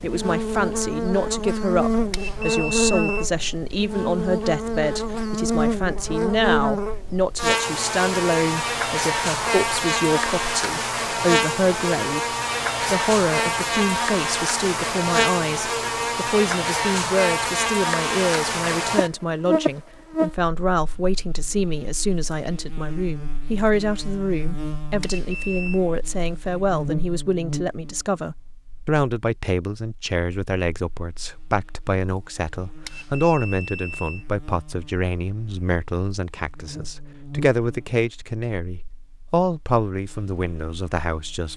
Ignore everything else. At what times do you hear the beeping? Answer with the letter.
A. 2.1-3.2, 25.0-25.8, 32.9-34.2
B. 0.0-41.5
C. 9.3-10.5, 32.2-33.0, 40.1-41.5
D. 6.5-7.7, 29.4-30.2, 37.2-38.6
A.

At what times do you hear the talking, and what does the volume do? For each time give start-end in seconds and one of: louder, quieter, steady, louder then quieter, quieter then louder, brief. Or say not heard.
0.0-41.5 steady.